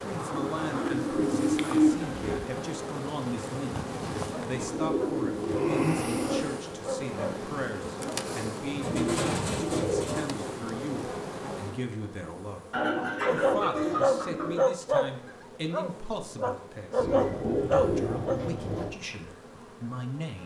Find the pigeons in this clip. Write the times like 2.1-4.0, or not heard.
0.3-2.5, 4.5-6.6, 8.8-10.3, 12.7-14.7, 16.9-18.9.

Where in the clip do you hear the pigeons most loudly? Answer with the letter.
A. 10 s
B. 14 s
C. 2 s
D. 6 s
C.